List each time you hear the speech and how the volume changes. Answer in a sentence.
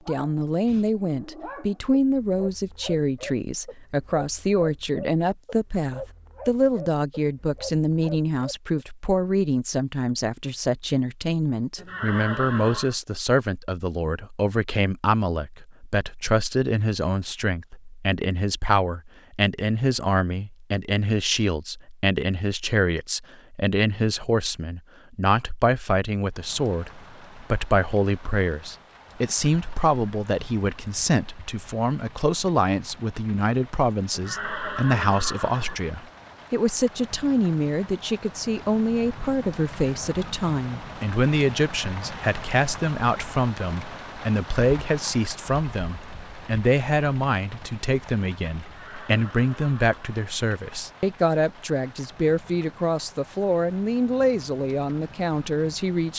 You can hear the speech from 0.1 to 56.1 s, at a steady volume.